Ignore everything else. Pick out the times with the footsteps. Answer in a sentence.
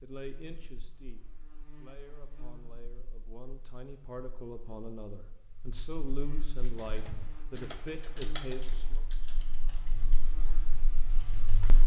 The footsteps can't be heard in this clip.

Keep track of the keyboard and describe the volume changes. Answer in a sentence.
The loudness of the keyboard goes down.